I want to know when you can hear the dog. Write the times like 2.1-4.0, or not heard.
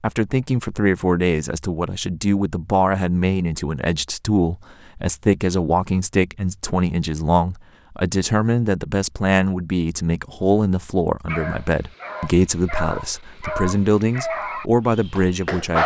11.2-15.8.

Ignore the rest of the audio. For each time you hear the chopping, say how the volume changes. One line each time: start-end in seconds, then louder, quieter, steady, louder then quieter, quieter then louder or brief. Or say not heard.
not heard.